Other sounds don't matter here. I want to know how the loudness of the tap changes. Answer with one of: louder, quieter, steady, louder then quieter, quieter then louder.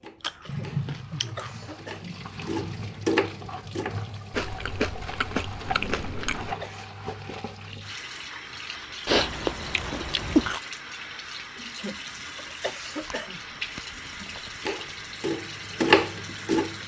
steady.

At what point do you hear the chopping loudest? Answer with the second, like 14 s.
16 s.